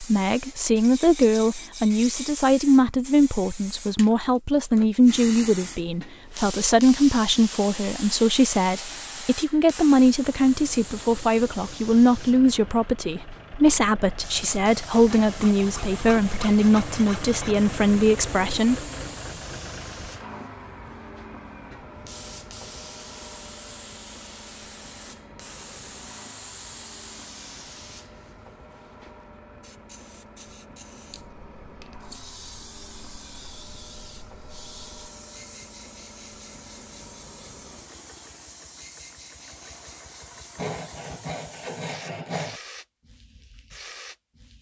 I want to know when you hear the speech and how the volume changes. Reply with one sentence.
The speech can be heard from 0.0 to 18.9 s, at a steady volume.